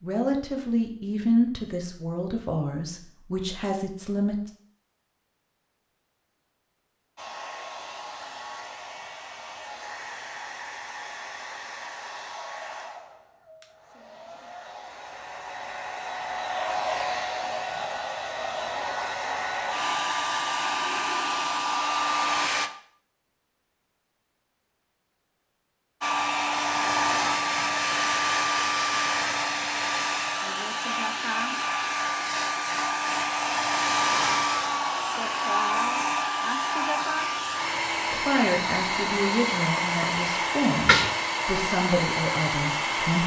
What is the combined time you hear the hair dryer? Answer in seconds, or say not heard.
33 s.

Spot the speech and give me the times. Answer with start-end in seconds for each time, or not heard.
0.0-4.5, 38.1-43.2.